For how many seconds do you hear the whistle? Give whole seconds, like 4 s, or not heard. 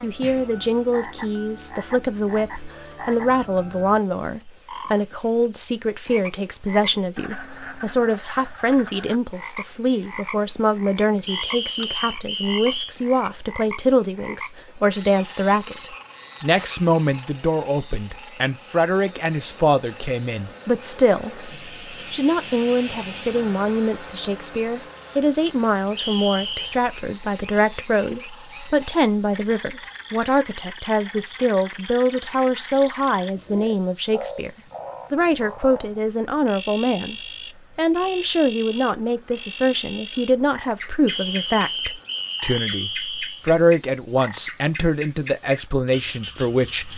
5 s.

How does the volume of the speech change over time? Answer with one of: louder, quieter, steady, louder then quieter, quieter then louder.
steady.